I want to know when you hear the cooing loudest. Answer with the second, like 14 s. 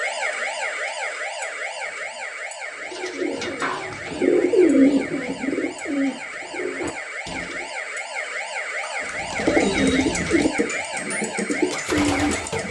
5 s.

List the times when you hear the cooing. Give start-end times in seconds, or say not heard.
2.8-7.7, 9.0-12.6.